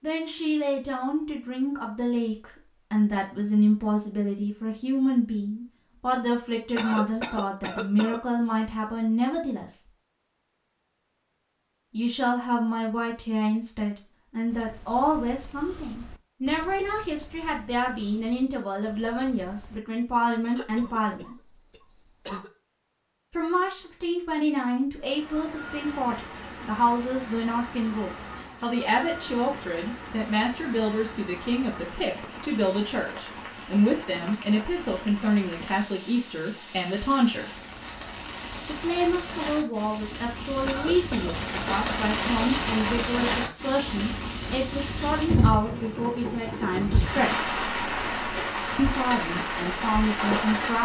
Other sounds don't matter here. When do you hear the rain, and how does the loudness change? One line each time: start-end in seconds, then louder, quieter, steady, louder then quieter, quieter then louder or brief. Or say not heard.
24.9-50.8 louder.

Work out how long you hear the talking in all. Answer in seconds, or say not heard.
44 s.